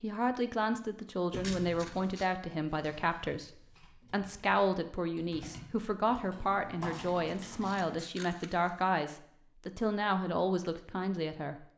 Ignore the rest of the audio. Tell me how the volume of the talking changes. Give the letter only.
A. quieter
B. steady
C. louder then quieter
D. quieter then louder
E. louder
B.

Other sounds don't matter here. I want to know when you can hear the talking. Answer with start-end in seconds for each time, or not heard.
0.0-11.7.